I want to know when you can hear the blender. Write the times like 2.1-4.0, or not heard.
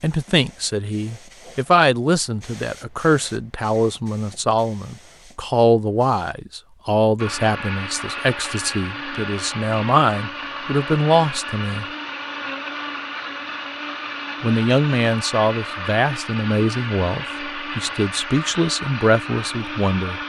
7.2-20.2.